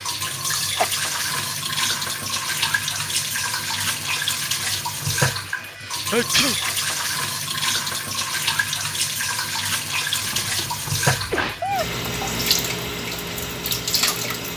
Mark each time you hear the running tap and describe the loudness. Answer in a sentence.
You can hear the running tap from 0.0 to 14.5 s, at a steady volume.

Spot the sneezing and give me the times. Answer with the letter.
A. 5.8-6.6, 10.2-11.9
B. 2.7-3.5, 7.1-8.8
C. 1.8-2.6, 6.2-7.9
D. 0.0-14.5
A.